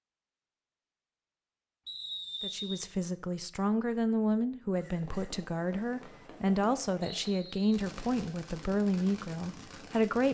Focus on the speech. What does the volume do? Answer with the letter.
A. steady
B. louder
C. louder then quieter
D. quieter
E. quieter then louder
A.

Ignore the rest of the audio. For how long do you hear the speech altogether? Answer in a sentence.
The speech can be heard for 8 seconds in total.